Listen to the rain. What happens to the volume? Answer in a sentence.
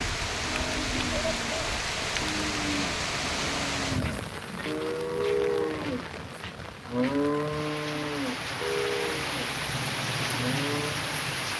The volume of the rain goes down, then up.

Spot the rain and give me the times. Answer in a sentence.
You can hear the rain from 0.0 to 11.5 s.